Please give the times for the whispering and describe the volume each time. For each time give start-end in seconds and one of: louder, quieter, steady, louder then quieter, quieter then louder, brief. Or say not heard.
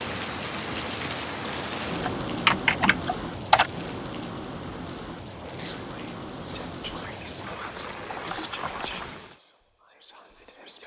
5.2-10.8 quieter.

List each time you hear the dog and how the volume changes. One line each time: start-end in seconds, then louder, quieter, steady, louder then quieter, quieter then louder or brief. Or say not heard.
not heard.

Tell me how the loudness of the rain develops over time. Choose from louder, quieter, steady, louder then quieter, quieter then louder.
quieter.